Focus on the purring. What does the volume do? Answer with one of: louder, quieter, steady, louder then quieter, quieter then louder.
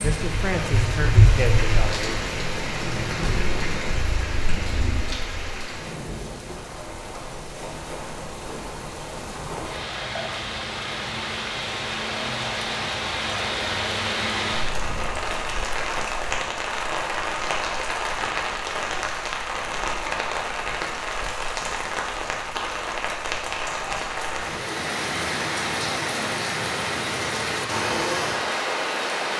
quieter.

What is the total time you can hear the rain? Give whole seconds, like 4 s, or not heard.
29 s.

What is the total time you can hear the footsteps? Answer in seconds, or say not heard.
not heard.